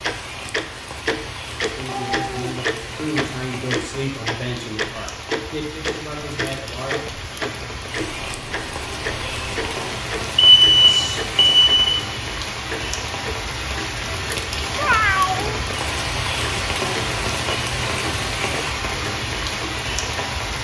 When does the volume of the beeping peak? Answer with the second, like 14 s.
11 s.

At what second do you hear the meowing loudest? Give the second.
15 s.